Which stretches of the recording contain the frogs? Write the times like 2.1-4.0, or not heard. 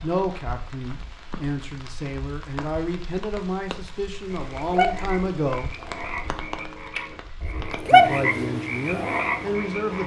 4.3-10.0.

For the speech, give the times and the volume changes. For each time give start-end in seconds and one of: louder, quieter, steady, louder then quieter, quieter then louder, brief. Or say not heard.
0.0-5.8 louder
7.9-10.0 brief.